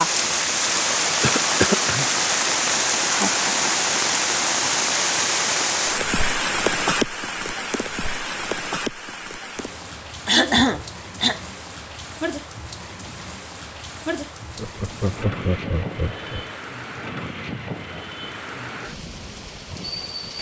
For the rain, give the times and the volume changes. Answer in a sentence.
The rain can be heard from 0.0 to 20.3 s, getting quieter.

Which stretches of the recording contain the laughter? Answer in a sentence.
The laughter can be heard from 3.0 to 3.9 s and from 14.6 to 16.5 s.